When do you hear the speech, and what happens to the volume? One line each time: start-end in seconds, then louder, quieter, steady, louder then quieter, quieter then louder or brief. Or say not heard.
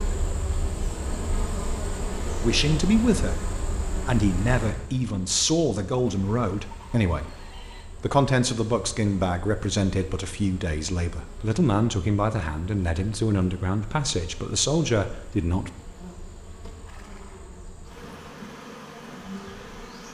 2.4-15.7 steady.